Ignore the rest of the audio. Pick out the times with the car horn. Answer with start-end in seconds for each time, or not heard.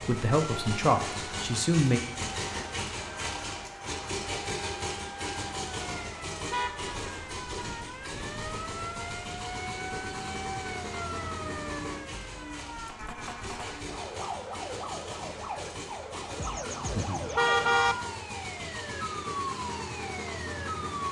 6.5-7.7, 16.4-17.9.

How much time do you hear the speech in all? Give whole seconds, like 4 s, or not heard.
2 s.